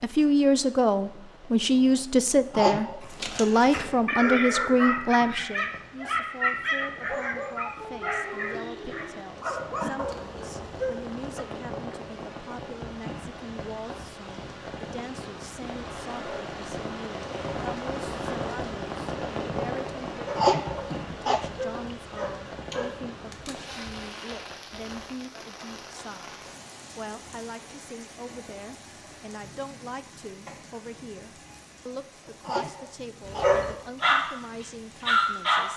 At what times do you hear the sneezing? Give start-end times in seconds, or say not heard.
2.5-3.0, 20.4-21.5, 32.4-33.5.